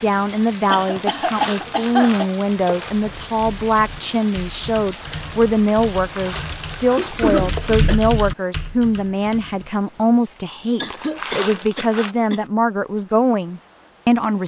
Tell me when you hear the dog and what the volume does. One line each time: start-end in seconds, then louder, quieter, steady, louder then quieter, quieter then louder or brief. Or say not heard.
not heard.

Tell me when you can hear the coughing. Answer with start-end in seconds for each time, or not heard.
0.7-2.3, 7.0-8.0, 10.8-12.4.